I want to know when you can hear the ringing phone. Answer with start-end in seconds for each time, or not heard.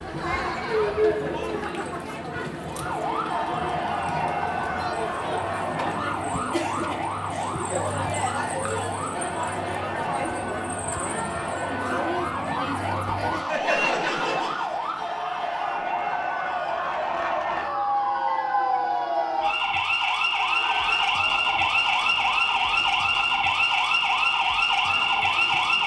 not heard.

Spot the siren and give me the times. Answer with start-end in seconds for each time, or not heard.
2.6-25.8.